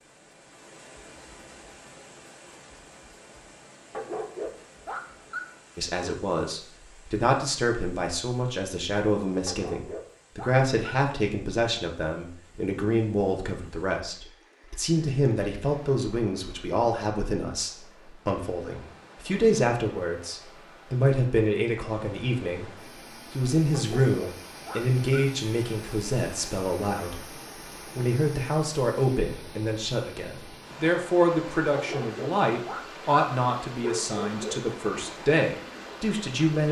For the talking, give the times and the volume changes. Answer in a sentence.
The talking can be heard from 5.8 to 36.6 s, at a steady volume.